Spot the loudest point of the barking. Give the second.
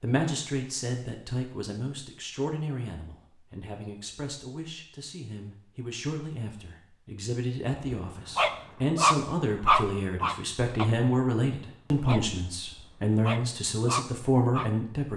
10 s.